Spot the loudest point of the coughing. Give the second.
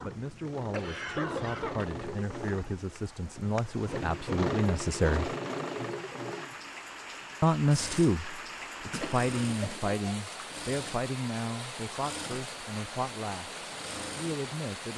1 s.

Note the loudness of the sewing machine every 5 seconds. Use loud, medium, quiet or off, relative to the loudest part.
loud, loud, medium.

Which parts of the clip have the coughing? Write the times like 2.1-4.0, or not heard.
0.7-1.9, 8.8-9.9.